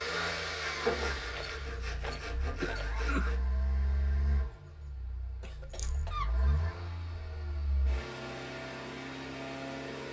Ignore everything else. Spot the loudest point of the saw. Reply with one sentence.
The volume of the saw peaks at 1 second.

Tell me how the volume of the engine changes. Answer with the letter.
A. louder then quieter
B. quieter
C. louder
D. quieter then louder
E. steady
D.